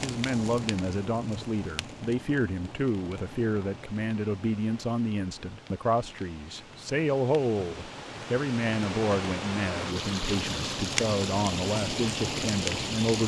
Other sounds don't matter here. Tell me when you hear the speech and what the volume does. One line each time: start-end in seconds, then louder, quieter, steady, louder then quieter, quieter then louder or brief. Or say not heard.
0.0-13.2 steady.